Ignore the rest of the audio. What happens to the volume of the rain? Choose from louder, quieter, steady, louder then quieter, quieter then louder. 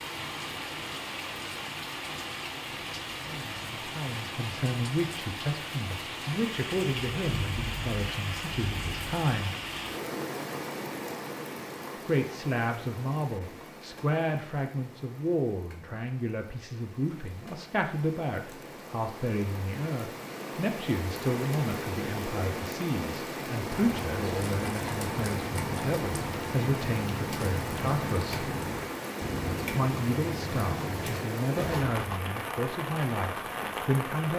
quieter then louder.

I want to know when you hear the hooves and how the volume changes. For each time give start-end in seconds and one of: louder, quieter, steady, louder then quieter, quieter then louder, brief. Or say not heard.
23.6-32.2 steady.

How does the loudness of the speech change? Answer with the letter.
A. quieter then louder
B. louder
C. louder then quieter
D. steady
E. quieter
D.